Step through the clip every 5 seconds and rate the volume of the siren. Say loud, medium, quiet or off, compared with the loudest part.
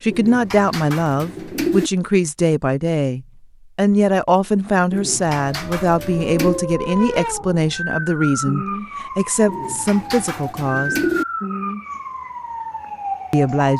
off, loud, loud.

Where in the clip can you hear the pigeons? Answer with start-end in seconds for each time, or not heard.
0.1-1.9, 4.9-6.7, 9.4-11.2.